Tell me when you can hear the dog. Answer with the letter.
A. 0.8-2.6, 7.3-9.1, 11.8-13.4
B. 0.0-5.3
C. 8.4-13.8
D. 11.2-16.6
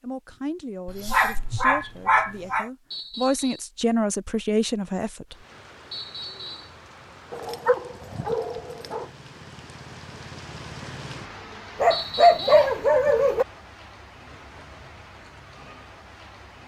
A.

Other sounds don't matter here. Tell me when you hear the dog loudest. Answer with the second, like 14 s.
12 s.